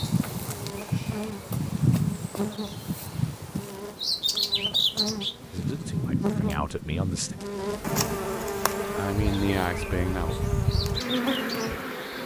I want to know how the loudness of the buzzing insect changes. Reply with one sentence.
The loudness of the buzzing insect goes up.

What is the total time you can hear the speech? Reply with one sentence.
The speech can be heard for 3 seconds in total.